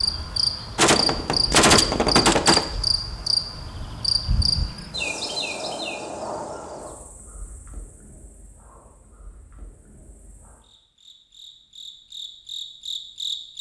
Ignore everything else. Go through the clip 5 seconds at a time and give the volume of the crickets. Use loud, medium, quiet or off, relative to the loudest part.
loud, medium, medium.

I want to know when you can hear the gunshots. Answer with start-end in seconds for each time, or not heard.
0.8-2.6.